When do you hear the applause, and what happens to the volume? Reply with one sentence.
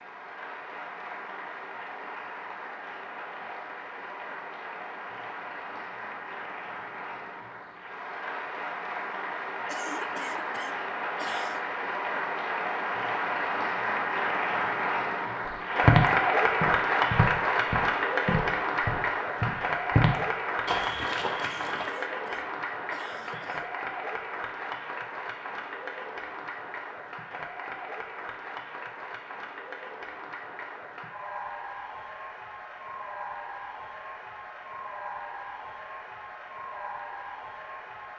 You can hear the applause from 0.0 to 38.1 s, getting louder then quieter.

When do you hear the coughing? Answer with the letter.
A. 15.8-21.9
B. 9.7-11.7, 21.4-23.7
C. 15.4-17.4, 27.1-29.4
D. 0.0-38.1
B.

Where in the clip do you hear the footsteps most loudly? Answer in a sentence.
The volume of the footsteps peaks at 16 seconds.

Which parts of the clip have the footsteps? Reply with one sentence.
You can hear the footsteps from 15.8 to 21.9 s.